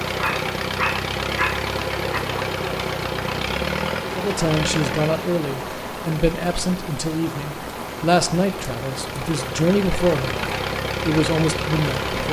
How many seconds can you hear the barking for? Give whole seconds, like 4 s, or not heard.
2 s.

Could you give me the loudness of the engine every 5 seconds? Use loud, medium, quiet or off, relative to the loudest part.
loud, medium, loud.